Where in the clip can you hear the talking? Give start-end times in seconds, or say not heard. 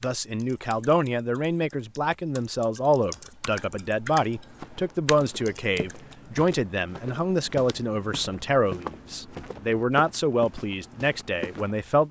0.0-12.0.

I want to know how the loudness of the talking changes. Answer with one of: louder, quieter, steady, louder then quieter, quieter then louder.
steady.